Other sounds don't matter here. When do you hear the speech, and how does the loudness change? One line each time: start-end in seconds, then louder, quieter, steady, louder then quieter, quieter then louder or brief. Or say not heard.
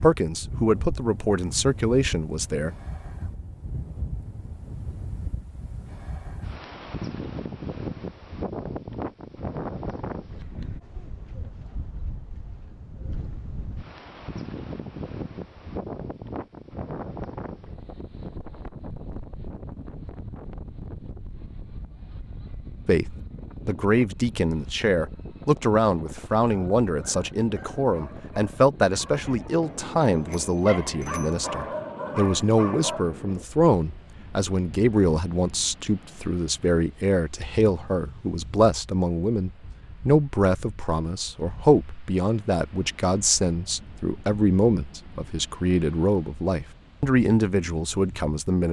0.0-2.8 brief
22.9-48.6 steady.